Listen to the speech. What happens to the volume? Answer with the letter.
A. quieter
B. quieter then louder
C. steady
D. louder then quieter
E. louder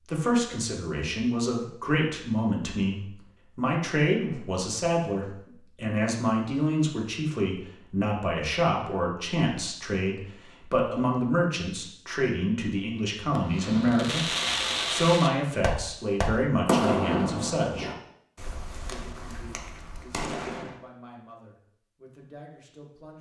A.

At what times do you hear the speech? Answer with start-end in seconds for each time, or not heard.
0.1-14.3, 14.9-17.9, 18.9-23.1.